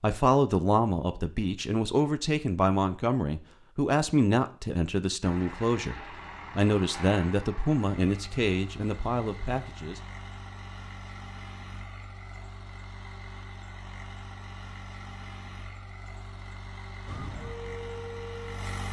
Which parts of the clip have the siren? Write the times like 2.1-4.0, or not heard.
17.1-18.8.